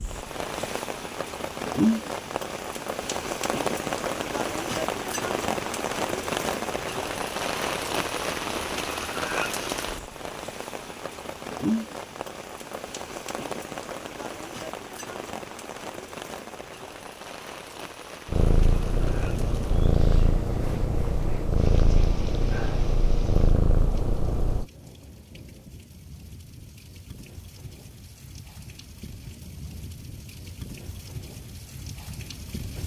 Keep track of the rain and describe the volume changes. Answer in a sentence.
The volume of the rain goes down.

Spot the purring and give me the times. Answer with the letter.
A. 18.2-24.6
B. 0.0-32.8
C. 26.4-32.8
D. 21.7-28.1
A.